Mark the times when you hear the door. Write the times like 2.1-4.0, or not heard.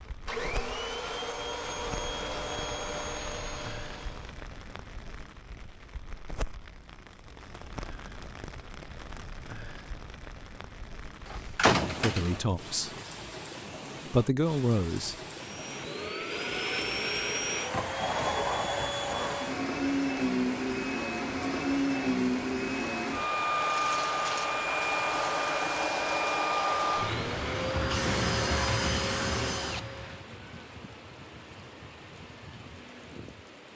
11.2-13.1.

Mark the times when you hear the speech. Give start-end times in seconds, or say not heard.
11.8-12.9, 14.1-15.2.